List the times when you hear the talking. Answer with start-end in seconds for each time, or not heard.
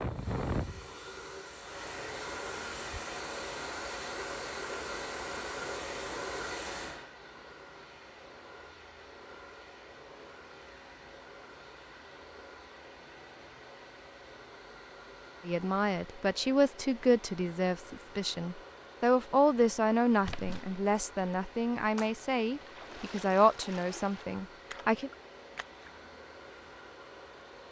15.4-25.1.